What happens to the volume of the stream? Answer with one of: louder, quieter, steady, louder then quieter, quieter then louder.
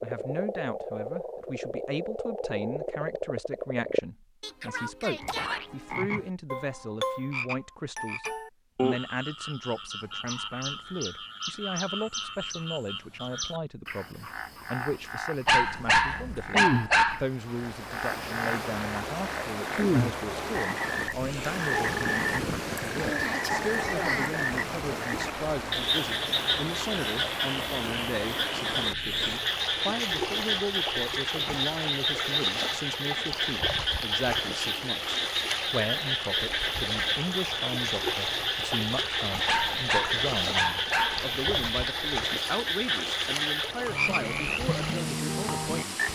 steady.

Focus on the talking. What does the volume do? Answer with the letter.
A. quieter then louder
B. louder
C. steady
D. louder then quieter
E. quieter
C.